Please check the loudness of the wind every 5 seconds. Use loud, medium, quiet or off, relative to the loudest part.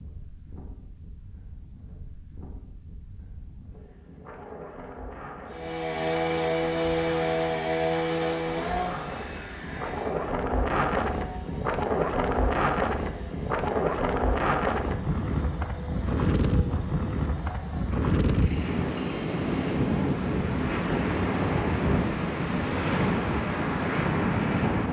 quiet, quiet, loud, loud, loud.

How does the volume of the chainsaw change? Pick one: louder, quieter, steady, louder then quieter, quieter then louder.
quieter.